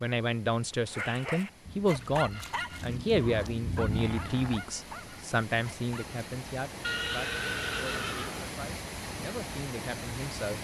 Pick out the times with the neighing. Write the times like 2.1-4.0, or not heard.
6.8-8.5.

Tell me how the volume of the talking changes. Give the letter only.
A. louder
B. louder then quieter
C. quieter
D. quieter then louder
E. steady
C.